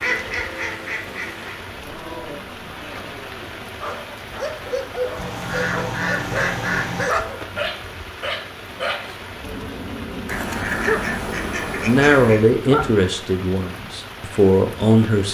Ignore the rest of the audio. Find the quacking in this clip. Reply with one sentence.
You can hear the quacking from 0.0 to 1.6 s, from 5.2 to 7.1 s and from 10.2 to 12.4 s.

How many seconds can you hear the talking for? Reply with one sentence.
You can hear the talking for 3 seconds altogether.